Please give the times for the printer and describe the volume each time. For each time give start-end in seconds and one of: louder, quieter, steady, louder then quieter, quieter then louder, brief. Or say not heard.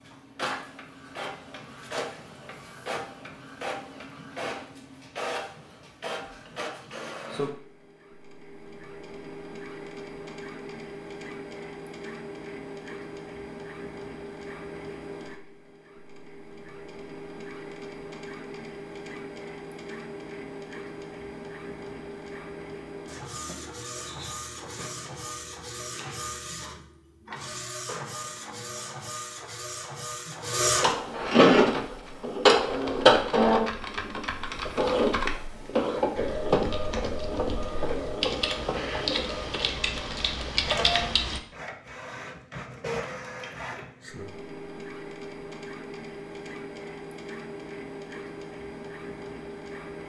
0.0-50.0 louder then quieter.